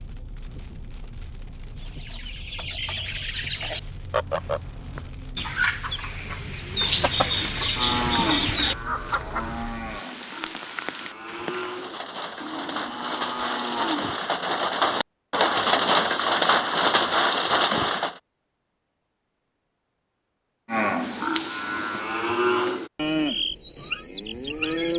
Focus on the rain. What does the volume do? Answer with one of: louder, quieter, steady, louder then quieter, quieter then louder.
louder.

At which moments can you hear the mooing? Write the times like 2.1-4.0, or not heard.
7.8-14.2, 20.6-24.9.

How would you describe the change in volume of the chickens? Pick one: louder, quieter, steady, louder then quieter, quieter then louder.
louder.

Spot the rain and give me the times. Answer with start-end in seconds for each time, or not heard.
0.0-18.2.